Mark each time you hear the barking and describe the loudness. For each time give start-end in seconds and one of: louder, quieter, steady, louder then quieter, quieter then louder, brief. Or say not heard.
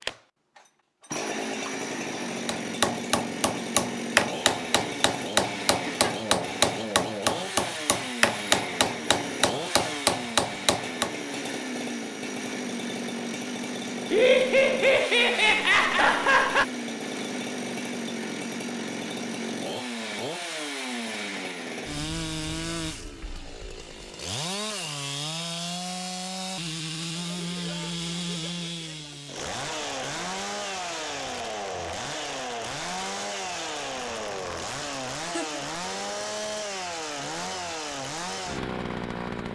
not heard.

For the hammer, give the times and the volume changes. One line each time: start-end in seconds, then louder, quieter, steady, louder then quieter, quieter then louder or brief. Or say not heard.
2.5-11.3 steady.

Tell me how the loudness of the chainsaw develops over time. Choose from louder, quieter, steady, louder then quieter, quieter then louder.
steady.